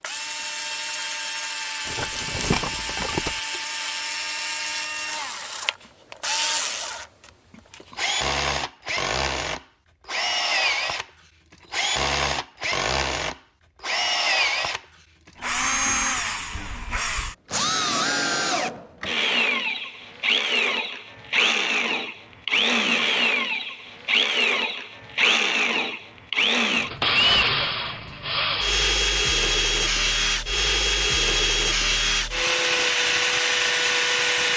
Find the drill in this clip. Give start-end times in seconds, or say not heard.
0.0-34.5.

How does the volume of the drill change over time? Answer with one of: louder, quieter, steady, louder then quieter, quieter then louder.
louder.